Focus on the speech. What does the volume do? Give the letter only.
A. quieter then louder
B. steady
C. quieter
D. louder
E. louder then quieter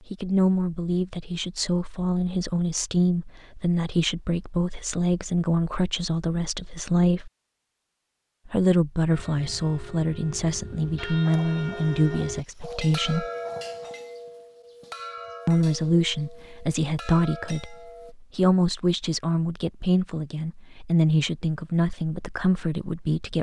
B.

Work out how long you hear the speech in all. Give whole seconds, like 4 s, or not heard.
20 s.